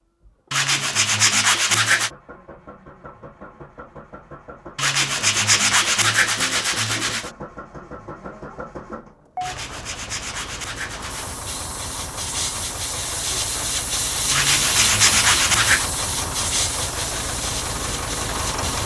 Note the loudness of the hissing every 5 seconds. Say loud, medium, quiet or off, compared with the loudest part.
off, off, loud, loud.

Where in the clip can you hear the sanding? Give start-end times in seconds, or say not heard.
0.5-2.1, 4.8-7.3, 9.4-11.4, 14.3-15.9.